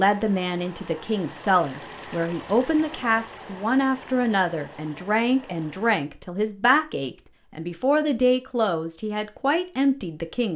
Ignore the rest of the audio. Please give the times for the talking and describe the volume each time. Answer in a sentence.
The talking can be heard from 0.0 to 10.5 s, at a steady volume.